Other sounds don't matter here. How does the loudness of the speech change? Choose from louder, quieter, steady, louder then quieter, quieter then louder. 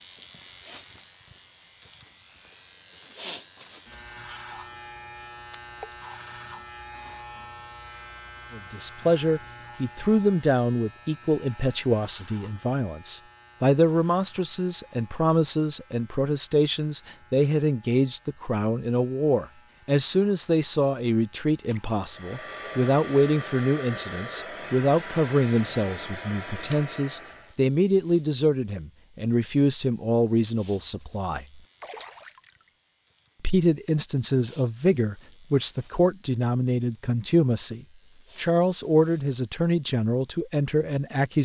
steady.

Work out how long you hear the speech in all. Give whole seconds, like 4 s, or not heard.
31 s.